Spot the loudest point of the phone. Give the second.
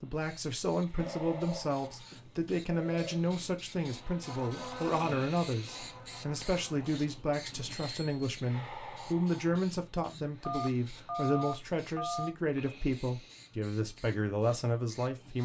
11 s.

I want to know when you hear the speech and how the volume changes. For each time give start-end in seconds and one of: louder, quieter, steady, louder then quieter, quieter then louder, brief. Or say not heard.
0.0-15.4 steady.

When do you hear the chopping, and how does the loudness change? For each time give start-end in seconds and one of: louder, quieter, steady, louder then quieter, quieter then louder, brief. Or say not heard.
not heard.